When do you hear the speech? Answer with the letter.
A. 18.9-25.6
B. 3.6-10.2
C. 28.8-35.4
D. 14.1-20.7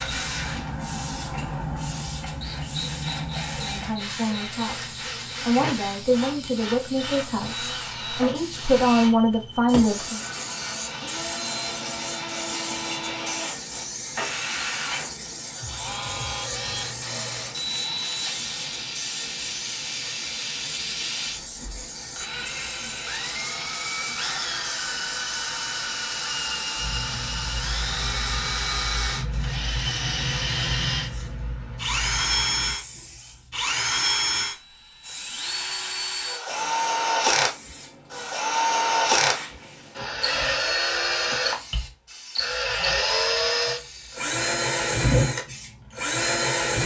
B.